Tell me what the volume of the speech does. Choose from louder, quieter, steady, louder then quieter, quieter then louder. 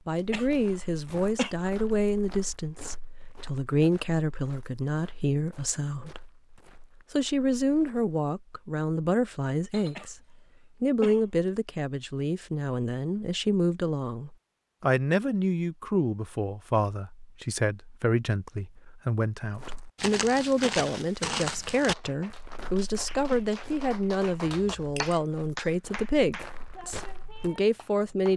steady.